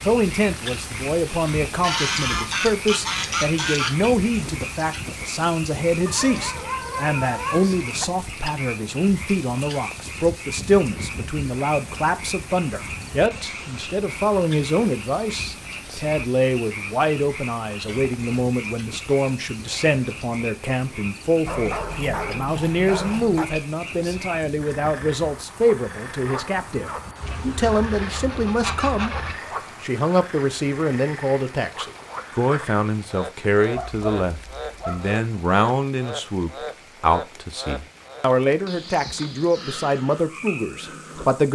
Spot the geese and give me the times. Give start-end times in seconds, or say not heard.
1.4-4.0, 27.2-29.4.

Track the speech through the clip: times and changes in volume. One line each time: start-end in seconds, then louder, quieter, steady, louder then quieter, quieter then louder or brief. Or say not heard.
0.0-29.1 steady
29.8-41.5 steady.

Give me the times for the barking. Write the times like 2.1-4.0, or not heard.
6.0-8.1, 21.4-23.4, 33.8-35.1.